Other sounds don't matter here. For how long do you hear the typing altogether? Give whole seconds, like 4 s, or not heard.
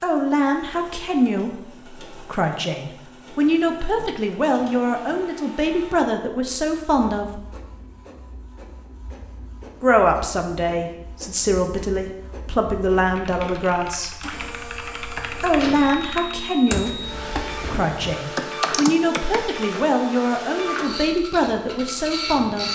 7 s.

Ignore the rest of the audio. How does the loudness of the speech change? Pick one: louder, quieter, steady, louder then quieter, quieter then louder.
steady.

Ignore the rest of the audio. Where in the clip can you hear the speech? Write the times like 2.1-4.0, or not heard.
0.0-7.4, 9.8-14.1, 15.4-22.7.